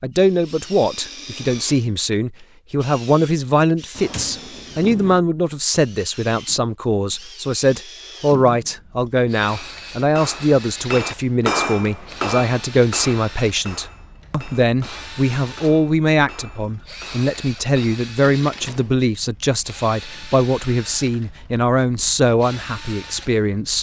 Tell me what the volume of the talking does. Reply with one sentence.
The loudness of the talking stays about the same.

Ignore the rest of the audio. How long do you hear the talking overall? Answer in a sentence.
You can hear the talking for 24 seconds altogether.